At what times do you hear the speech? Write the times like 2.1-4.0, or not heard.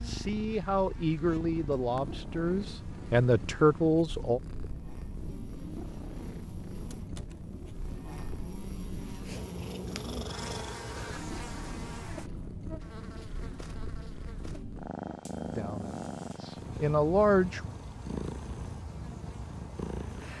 0.0-4.4, 15.4-17.6.